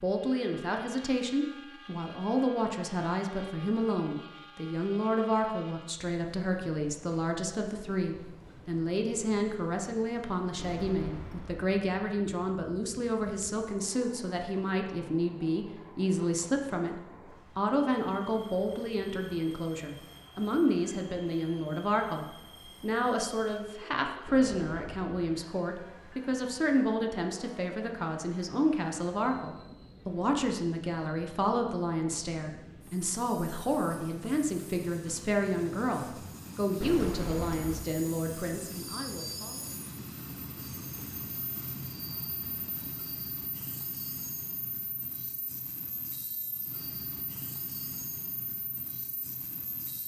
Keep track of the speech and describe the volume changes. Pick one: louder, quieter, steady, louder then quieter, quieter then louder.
steady.